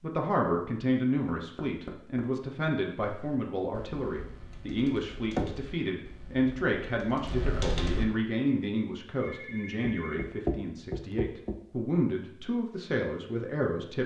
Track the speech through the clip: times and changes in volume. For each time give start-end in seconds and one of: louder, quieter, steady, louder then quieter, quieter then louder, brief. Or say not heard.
0.0-14.0 steady.